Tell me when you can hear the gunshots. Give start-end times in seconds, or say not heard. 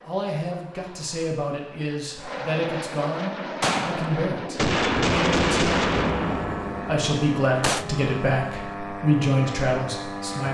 3.6-7.8.